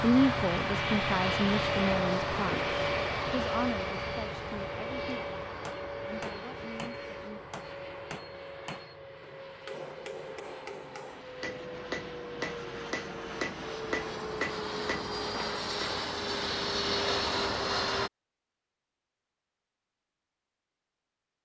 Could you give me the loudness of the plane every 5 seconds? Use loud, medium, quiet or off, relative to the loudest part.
loud, medium, medium, loud, off.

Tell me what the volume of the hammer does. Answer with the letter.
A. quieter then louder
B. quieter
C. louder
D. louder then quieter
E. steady
C.